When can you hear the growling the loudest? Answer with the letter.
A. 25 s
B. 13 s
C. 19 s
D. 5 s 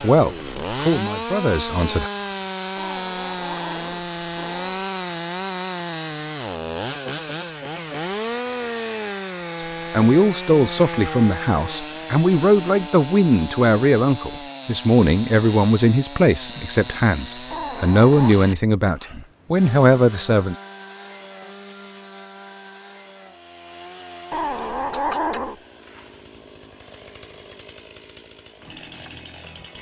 A.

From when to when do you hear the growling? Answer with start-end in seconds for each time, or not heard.
2.8-4.8, 17.5-18.4, 24.3-25.6.